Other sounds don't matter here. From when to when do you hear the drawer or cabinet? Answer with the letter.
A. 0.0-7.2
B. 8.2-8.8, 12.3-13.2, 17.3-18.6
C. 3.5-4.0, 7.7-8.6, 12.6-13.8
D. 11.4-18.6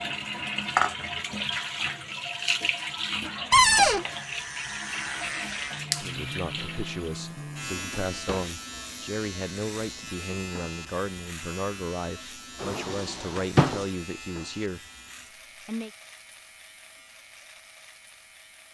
C.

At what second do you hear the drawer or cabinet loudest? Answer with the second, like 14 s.
4 s.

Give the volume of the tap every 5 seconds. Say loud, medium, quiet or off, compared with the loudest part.
loud, medium, off, off.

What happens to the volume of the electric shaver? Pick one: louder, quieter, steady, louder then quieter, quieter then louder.
quieter.